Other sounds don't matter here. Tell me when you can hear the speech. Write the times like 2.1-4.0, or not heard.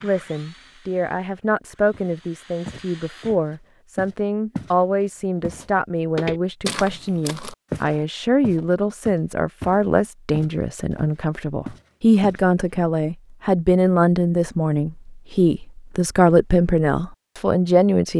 0.0-18.1.